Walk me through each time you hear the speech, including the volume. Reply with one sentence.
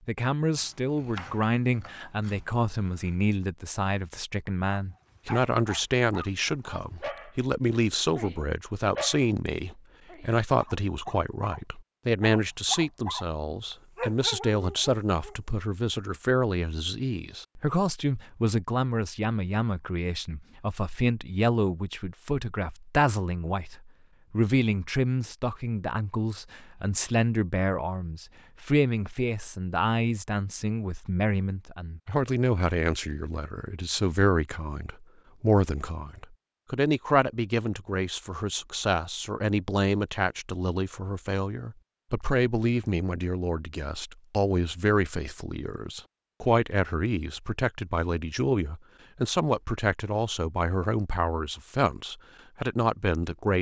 The speech can be heard from 0.1 to 53.5 s, at a steady volume.